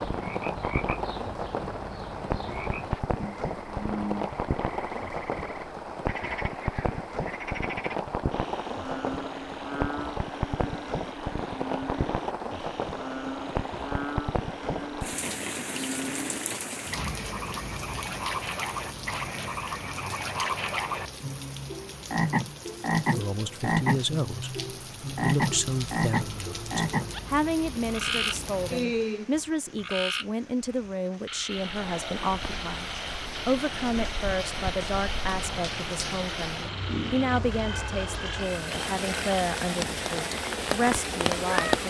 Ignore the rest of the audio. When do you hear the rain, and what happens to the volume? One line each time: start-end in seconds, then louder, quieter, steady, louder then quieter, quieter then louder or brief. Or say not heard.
0.0-41.8 quieter then louder.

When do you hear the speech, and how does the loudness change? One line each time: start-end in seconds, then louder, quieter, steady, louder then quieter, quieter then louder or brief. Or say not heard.
23.1-41.8 steady.